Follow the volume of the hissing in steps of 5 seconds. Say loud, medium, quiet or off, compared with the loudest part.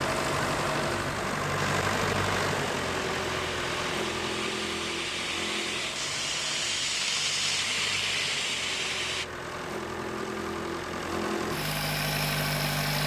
medium, loud, off.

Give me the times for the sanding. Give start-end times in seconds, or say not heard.
not heard.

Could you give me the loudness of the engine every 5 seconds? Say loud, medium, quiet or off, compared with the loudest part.
loud, medium, loud.